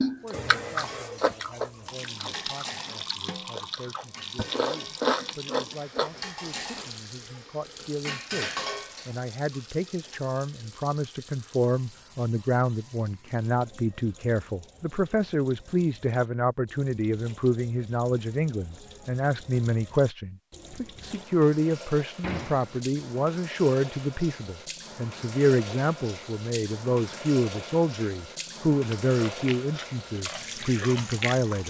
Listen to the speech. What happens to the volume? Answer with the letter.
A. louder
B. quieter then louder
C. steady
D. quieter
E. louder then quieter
A.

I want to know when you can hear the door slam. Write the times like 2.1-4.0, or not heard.
22.2-22.9.